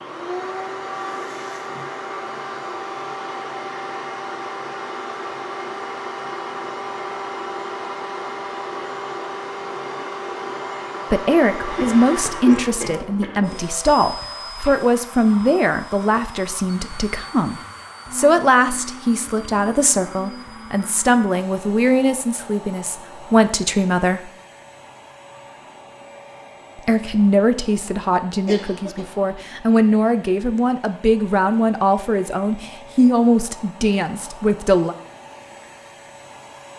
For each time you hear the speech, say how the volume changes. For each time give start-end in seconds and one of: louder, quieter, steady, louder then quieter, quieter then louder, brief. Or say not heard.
11.1-24.3 steady
26.8-35.0 steady.